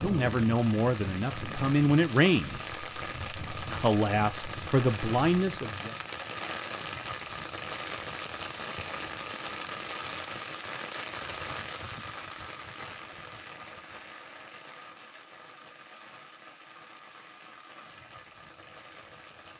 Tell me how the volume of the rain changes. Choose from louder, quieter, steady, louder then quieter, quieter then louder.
quieter.